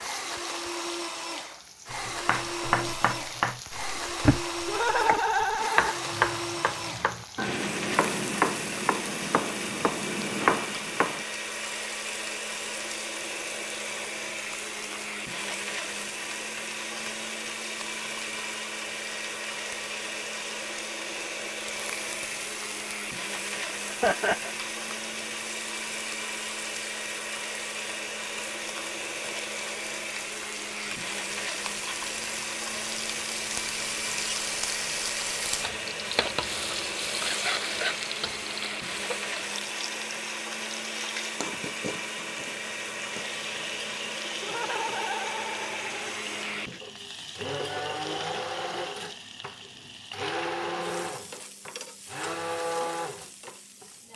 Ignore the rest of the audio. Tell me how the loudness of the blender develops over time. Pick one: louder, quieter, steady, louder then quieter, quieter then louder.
steady.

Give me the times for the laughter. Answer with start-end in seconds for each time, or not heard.
4.7-6.0, 23.9-24.6, 44.4-46.2.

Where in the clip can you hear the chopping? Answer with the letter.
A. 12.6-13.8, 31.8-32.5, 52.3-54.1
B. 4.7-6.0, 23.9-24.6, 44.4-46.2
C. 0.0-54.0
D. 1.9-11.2
D.